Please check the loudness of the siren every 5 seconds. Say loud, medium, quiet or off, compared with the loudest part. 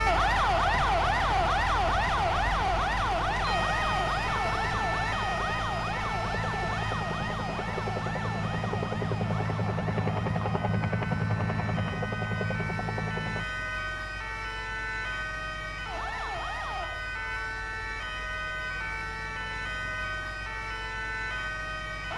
loud, medium, medium, medium, medium.